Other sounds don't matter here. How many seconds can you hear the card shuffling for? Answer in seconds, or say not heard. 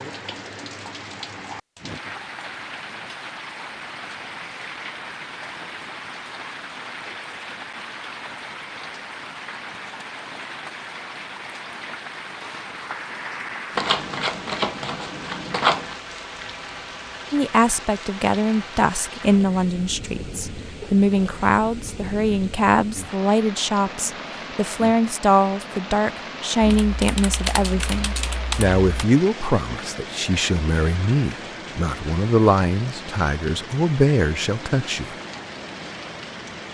2 s.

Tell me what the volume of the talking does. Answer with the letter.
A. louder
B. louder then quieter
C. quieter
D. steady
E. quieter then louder
D.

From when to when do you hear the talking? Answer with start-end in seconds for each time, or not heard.
17.3-35.1.